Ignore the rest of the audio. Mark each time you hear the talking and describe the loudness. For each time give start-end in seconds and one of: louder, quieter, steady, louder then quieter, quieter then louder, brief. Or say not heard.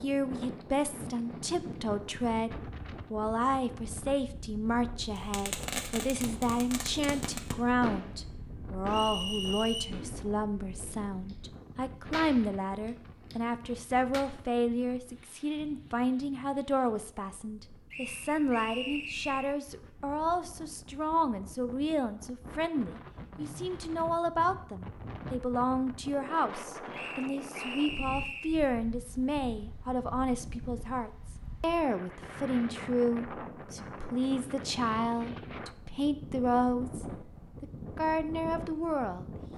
0.0-39.3 steady.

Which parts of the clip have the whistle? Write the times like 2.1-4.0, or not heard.
8.8-9.9, 17.9-19.6, 26.9-28.6.